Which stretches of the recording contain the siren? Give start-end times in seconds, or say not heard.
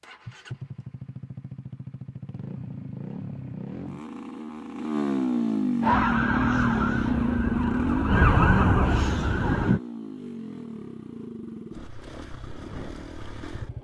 5.8-9.8.